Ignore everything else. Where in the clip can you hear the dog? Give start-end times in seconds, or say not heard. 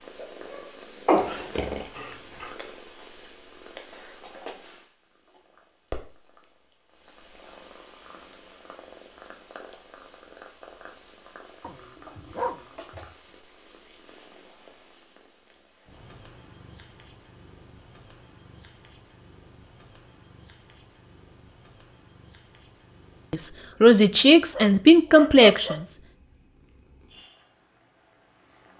1.1-2.5, 11.6-13.2, 24.2-25.9.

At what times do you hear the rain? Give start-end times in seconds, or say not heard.
not heard.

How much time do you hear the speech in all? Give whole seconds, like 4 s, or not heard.
3 s.